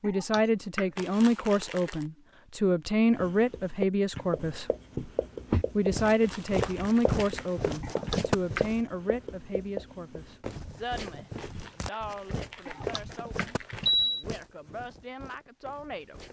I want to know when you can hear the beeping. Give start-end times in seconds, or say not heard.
0.1-0.8, 7.8-8.7, 12.7-14.2.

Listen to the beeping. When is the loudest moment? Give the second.
14 s.